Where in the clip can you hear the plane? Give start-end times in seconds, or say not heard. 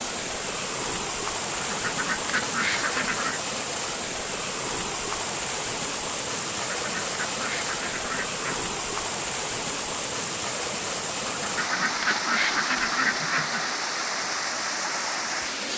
not heard.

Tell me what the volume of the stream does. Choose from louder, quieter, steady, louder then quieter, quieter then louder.
steady.